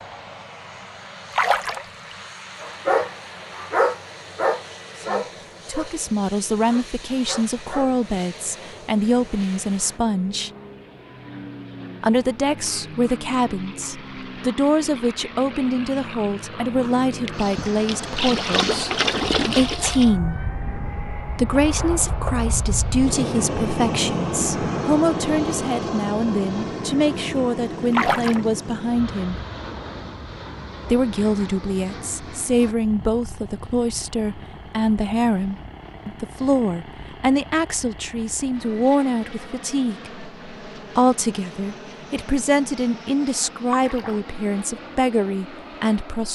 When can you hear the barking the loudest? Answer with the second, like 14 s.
4 s.